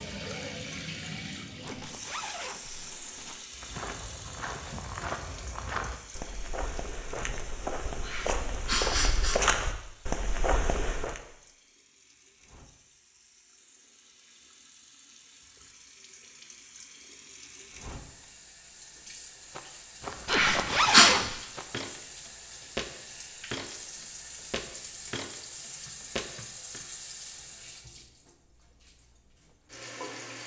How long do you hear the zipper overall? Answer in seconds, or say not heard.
3 s.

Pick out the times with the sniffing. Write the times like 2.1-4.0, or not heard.
8.1-9.4, 20.3-21.1.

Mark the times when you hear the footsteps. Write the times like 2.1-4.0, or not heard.
3.5-11.2, 19.5-26.8.